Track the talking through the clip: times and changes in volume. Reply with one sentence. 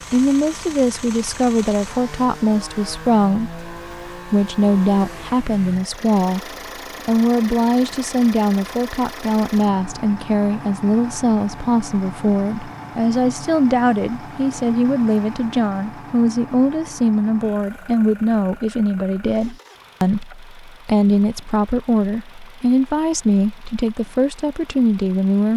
You can hear the talking from 0.1 to 25.5 s, at a steady volume.